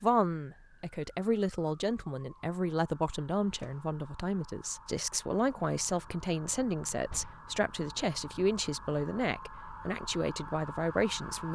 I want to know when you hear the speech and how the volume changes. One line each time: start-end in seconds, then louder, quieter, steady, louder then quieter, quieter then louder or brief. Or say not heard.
0.0-11.5 steady.